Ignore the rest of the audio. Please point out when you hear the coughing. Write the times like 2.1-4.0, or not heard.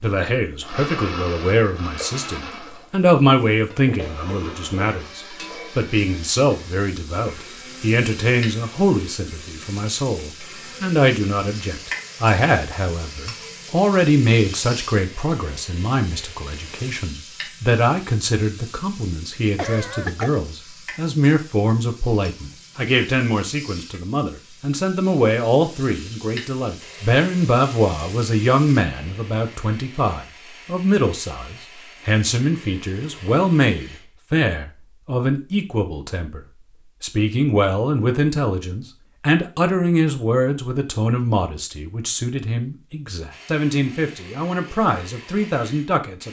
19.6-20.3.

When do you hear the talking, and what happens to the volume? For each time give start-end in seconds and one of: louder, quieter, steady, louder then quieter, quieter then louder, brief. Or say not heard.
0.0-46.2 steady.